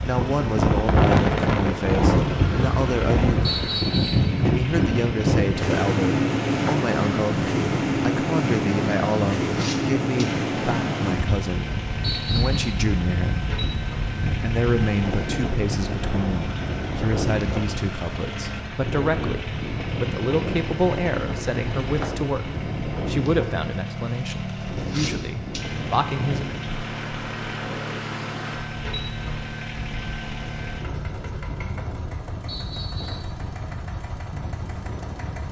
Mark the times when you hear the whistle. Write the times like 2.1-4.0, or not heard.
3.4-4.3, 12.0-12.7, 32.5-33.3.